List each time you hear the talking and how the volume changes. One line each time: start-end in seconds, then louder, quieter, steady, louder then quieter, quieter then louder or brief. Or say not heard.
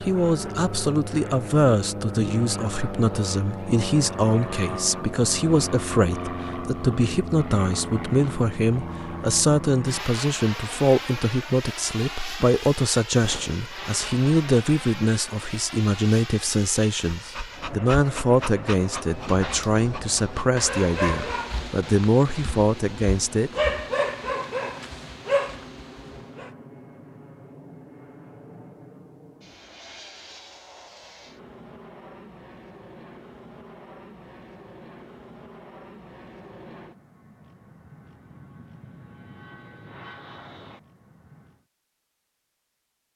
0.0-23.5 steady.